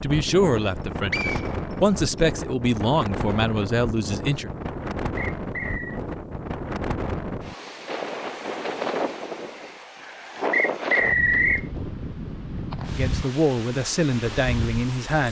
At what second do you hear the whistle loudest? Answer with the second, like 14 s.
11 s.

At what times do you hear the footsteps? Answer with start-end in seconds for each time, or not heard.
not heard.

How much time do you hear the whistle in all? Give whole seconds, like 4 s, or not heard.
3 s.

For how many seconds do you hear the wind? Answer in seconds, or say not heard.
15 s.